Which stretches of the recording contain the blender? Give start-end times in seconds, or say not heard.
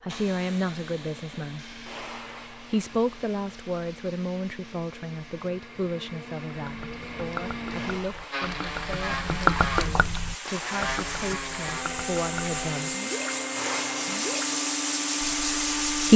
0.0-16.1.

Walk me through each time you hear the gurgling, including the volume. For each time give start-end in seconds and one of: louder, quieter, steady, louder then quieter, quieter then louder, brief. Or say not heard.
6.6-13.3 louder then quieter
13.9-14.5 brief.